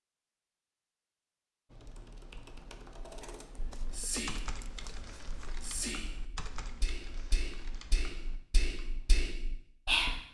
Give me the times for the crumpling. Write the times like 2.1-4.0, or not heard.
3.7-5.7.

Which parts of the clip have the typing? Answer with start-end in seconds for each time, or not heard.
1.7-9.2.